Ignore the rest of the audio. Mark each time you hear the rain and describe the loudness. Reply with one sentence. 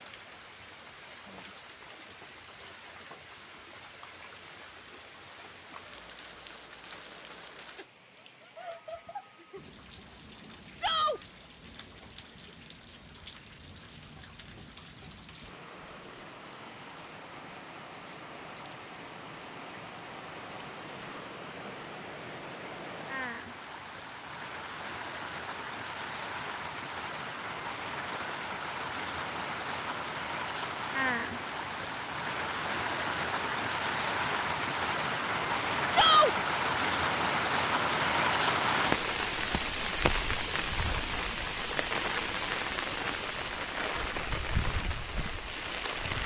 You can hear the rain from 0.0 to 46.2 s, getting louder.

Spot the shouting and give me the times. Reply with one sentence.
You can hear the shouting from 10.8 to 11.2 s and from 35.9 to 36.4 s.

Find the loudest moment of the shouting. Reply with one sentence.
The volume of the shouting peaks at 36 seconds.